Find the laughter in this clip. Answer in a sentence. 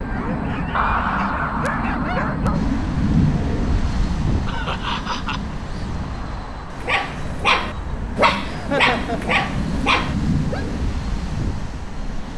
You can hear the laughter from 0.7 to 2.2 s, from 4.5 to 5.5 s and from 8.4 to 9.3 s.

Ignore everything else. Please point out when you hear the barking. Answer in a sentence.
The barking can be heard from 0.0 to 2.8 s and from 6.8 to 10.7 s.